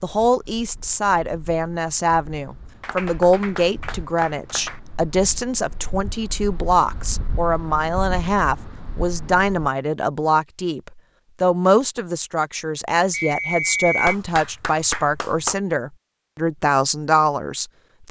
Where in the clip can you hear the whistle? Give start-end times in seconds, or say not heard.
13.1-14.2.